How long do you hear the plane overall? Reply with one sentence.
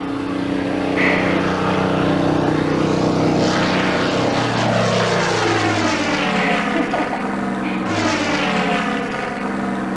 The plane can be heard for 10 seconds in total.